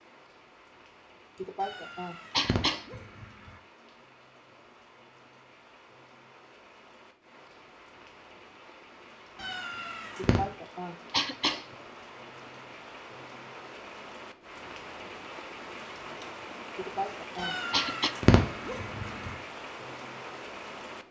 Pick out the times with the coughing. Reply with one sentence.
The coughing can be heard from 1.4 to 3.0 s, from 10.2 to 11.7 s and from 16.8 to 18.1 s.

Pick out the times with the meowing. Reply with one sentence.
You can hear the meowing from 1.6 to 3.5 s, from 9.3 to 10.4 s and from 17.4 to 19.4 s.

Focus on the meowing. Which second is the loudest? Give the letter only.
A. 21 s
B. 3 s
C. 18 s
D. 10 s
C.